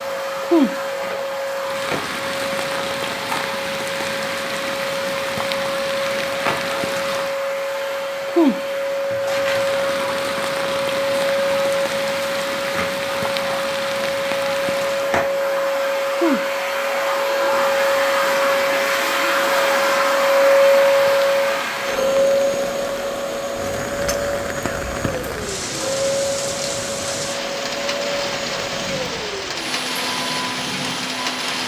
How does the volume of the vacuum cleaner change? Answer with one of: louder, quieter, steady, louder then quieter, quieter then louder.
louder then quieter.